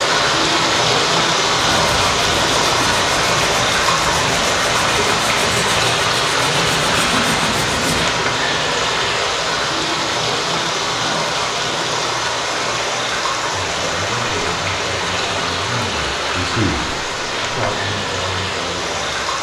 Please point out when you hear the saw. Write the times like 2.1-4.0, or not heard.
1.8-8.1.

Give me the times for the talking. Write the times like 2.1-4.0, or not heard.
13.5-19.1.